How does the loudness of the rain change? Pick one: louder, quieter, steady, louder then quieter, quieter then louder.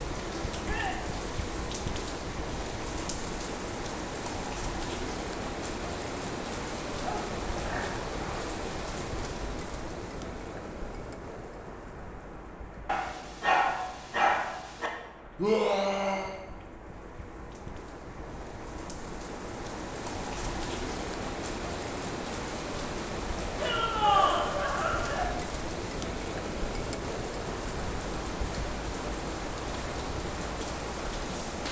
quieter then louder.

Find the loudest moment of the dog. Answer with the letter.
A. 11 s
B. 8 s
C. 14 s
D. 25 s
C.